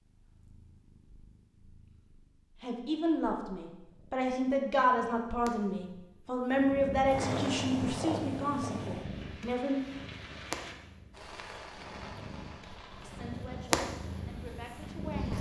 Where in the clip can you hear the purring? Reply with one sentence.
The purring can be heard from 0.0 to 15.3 s.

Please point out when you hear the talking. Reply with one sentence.
The talking can be heard from 2.6 to 9.8 s and from 13.0 to 15.3 s.